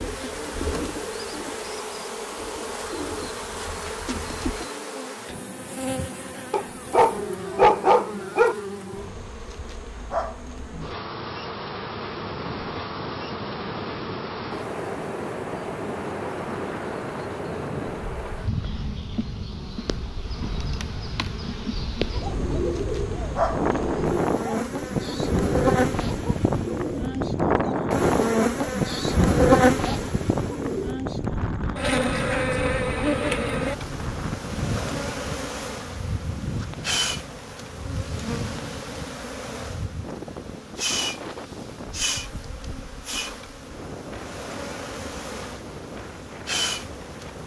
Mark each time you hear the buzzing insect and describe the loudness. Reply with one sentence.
You can hear the buzzing insect from 0.0 to 47.4 s, getting louder then quieter.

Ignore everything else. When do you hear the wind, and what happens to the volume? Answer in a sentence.
You can hear the wind from 12.0 to 47.4 s, getting louder then quieter.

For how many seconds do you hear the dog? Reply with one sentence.
You can hear the dog for 2 seconds altogether.